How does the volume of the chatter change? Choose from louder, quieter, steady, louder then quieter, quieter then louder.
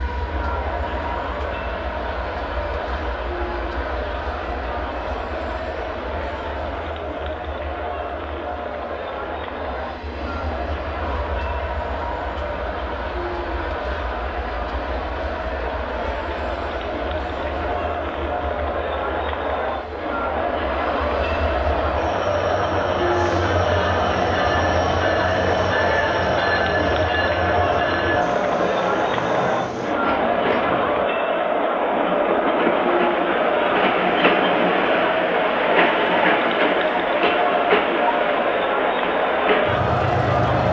louder.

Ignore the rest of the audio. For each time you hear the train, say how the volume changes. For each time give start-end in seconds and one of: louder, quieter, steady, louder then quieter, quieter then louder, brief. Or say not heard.
0.0-40.6 louder.